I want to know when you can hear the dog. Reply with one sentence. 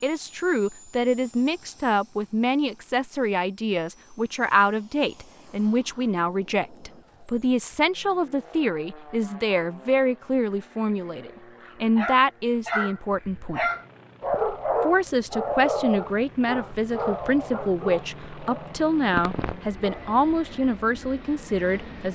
You can hear the dog from 11.9 to 20.2 s.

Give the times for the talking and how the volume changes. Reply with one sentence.
You can hear the talking from 0.0 to 13.7 s, at a steady volume; and from 14.8 to 22.1 s, at a steady volume.